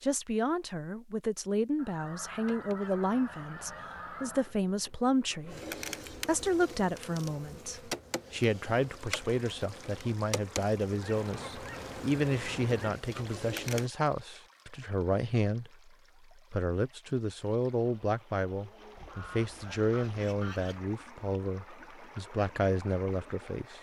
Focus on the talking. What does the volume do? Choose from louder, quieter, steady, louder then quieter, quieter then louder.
steady.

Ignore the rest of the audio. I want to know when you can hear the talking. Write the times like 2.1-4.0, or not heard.
0.0-23.7.